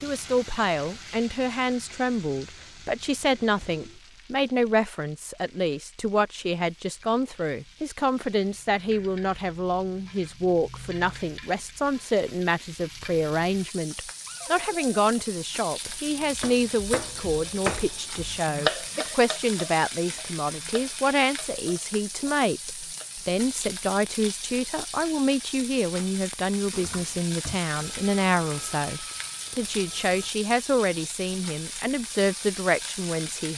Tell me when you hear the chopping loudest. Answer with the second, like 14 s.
19 s.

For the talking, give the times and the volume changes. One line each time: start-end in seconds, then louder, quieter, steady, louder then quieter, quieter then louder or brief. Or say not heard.
0.0-33.5 steady.